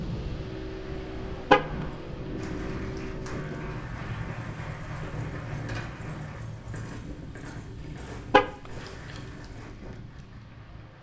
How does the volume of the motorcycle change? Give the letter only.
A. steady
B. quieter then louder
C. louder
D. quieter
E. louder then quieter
D.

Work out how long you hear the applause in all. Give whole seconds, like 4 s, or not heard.
6 s.